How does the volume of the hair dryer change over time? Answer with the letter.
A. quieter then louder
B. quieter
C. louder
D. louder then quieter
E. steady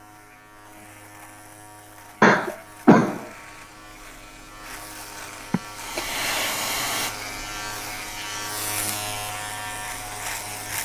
B.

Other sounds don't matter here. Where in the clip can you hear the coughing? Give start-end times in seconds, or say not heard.
2.2-3.2, 5.5-6.5.